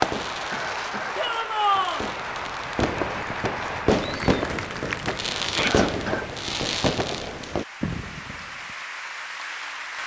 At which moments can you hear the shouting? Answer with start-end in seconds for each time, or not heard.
1.1-2.0, 5.4-5.8.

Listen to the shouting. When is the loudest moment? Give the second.
2 s.